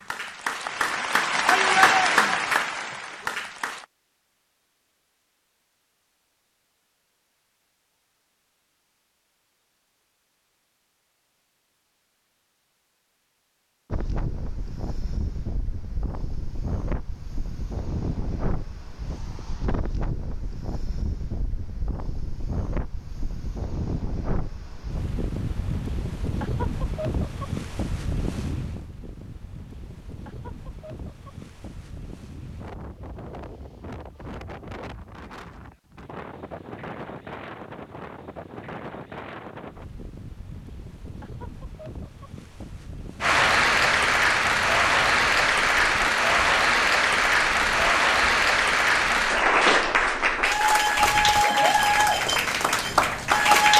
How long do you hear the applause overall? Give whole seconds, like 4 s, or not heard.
14 s.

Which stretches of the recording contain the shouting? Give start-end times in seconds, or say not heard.
1.4-2.5.